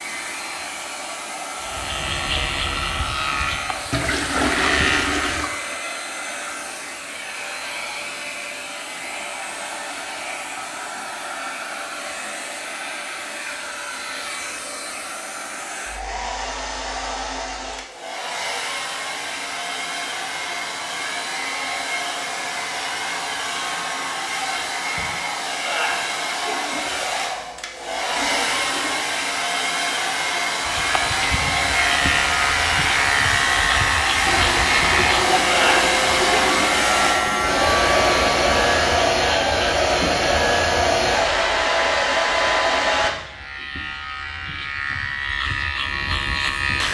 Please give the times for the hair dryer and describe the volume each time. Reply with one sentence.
You can hear the hair dryer from 0.0 to 43.1 s, getting louder.